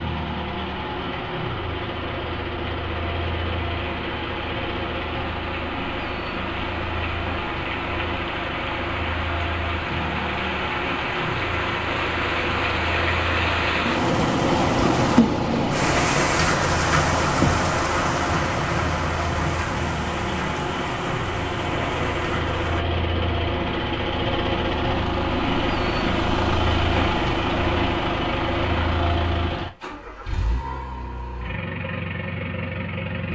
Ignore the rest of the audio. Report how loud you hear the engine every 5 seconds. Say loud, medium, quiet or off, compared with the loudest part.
medium, medium, medium, medium, loud, loud, medium.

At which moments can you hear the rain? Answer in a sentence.
You can hear the rain from 0.0 to 22.9 s.